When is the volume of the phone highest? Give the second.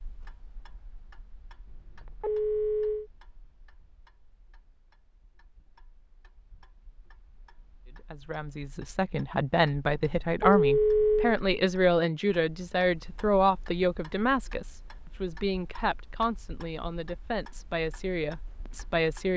11 s.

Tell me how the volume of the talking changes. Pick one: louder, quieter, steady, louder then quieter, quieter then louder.
quieter.